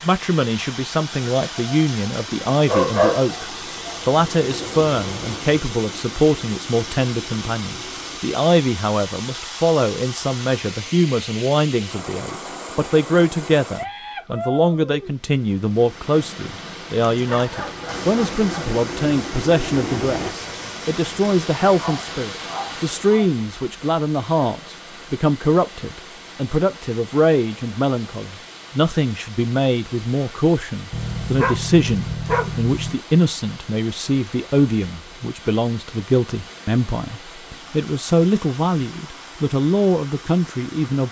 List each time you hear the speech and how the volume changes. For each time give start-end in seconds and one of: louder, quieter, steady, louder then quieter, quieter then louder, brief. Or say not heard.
0.0-41.0 steady.